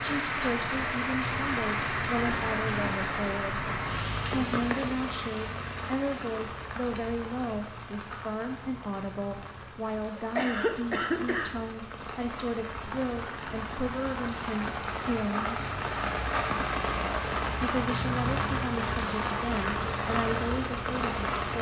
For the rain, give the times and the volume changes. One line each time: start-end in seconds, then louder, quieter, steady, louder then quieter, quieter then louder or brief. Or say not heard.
0.0-21.5 quieter then louder.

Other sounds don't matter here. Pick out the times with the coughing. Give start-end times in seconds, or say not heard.
10.2-11.6.